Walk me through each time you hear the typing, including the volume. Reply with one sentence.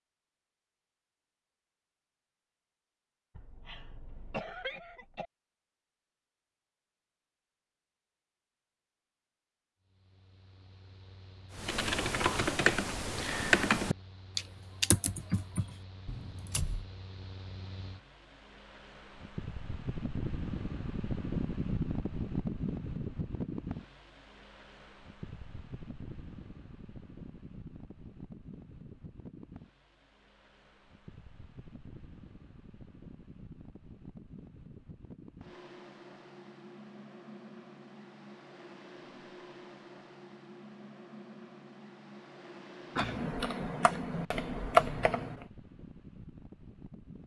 You can hear the typing from 11.6 to 16.9 s, getting quieter; and briefly from 43.0 to 45.5 s.